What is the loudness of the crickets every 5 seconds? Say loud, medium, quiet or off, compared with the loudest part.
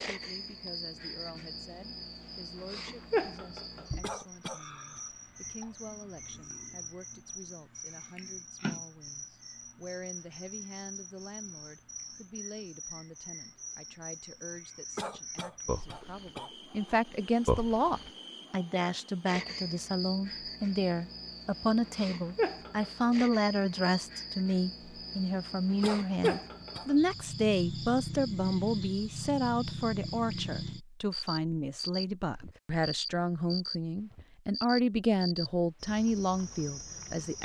loud, medium, medium, loud, loud, loud, loud, medium.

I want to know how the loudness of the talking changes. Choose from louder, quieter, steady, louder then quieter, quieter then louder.
louder.